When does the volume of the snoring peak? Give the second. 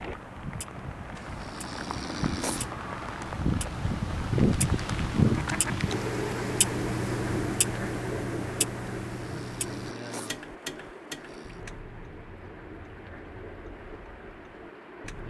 2 s.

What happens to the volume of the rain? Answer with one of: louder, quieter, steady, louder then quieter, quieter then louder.
louder then quieter.